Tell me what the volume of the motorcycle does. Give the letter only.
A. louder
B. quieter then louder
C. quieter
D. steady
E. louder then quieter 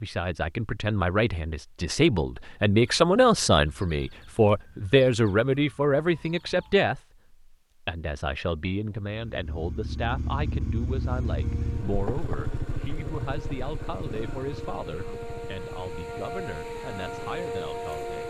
C.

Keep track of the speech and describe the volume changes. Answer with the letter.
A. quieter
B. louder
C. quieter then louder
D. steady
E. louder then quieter
A.